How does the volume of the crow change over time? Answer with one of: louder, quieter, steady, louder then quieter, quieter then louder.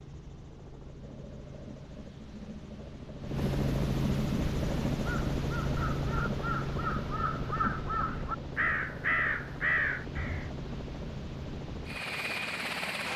louder.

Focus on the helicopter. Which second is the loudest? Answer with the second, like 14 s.
4 s.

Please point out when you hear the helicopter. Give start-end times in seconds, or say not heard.
0.0-13.1.